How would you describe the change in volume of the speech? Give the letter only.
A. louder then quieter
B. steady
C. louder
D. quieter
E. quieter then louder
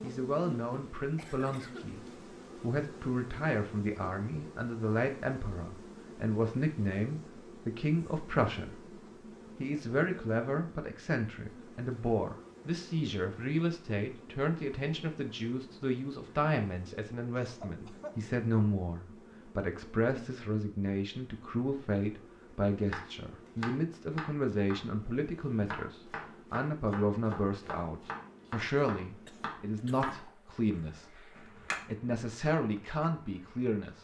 B.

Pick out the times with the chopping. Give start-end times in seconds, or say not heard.
22.9-31.9.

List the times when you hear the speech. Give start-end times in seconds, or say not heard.
0.0-8.9, 9.6-34.0.